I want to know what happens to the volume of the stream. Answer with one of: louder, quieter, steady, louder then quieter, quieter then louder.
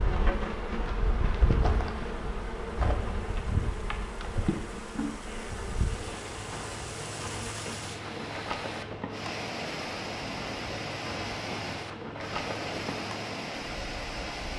louder.